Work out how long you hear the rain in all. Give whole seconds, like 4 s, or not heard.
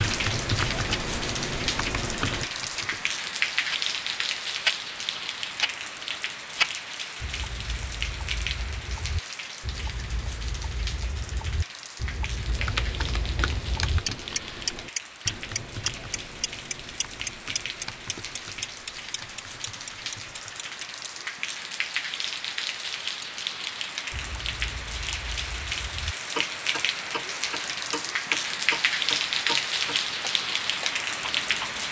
32 s.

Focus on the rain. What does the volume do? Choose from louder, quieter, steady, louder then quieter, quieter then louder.
quieter then louder.